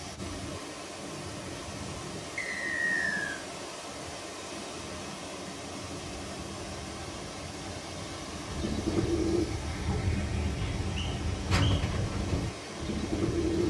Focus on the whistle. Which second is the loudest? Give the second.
3 s.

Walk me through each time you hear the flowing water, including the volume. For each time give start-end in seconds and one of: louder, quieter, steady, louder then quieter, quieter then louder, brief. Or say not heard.
0.0-13.6 steady.